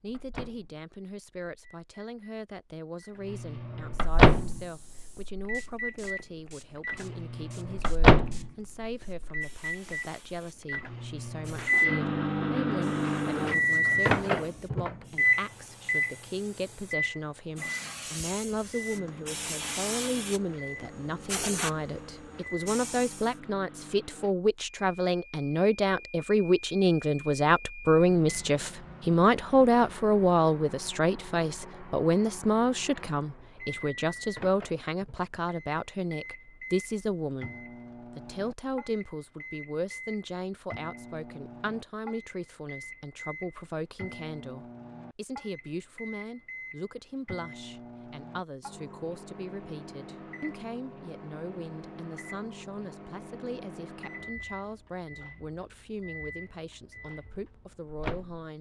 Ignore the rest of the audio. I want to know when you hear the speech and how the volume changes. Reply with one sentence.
You can hear the speech from 0.0 to 58.5 s, getting louder then quieter.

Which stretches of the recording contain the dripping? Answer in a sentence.
You can't hear the dripping here.